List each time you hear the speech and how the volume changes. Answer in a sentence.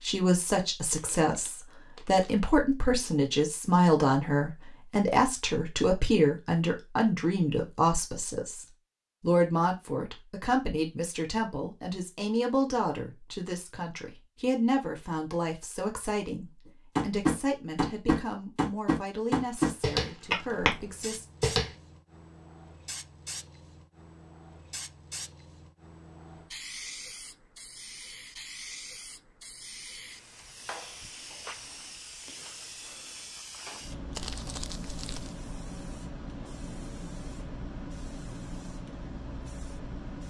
You can hear the speech from 0.0 to 21.2 s, getting quieter.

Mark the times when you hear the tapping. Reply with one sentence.
The tapping can be heard from 16.9 to 21.7 s.